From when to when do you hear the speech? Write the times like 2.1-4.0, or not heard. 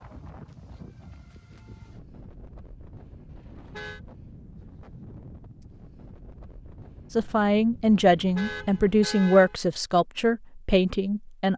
7.2-11.5.